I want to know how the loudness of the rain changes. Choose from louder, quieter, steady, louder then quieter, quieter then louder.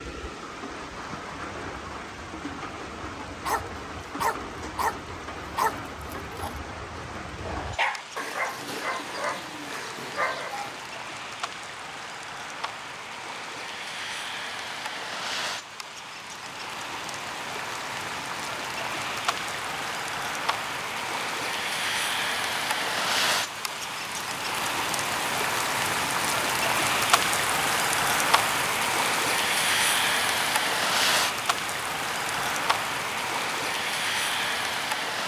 louder.